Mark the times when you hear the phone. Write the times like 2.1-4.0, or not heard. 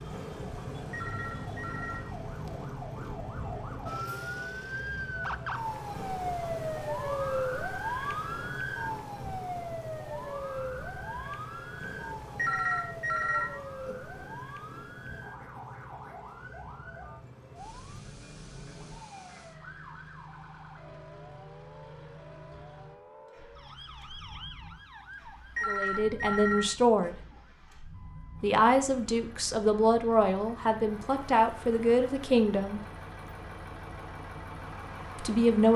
0.9-2.0, 12.3-13.9, 25.6-27.1.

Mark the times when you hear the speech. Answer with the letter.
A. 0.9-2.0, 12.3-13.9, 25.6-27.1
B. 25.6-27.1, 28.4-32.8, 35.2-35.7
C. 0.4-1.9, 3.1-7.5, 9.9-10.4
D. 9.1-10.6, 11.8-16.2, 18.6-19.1
B.